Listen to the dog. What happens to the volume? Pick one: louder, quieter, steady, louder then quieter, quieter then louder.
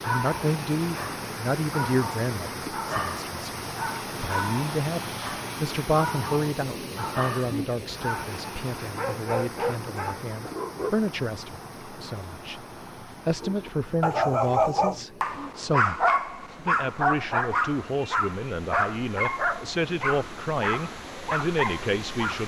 louder then quieter.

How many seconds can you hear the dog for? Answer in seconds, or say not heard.
20 s.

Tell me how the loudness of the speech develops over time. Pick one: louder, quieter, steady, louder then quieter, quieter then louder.
steady.